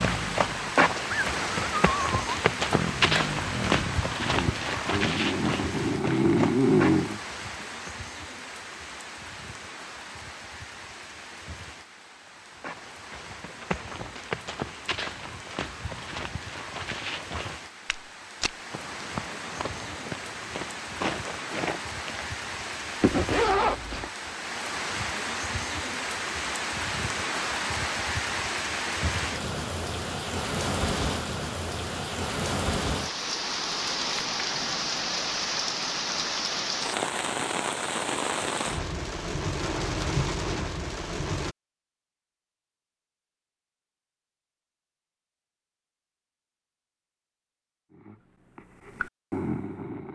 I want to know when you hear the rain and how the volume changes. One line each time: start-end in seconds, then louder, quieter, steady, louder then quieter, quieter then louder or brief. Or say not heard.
0.0-41.5 quieter then louder.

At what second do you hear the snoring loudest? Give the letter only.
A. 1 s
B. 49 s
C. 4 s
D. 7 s
D.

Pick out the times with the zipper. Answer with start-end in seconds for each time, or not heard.
23.0-24.1.